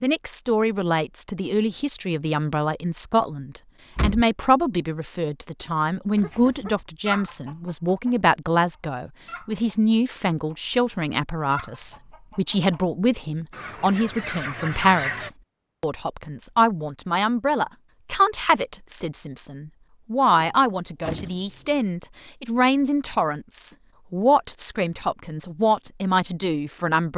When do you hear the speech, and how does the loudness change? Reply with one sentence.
The speech can be heard from 0.0 to 27.1 s, at a steady volume.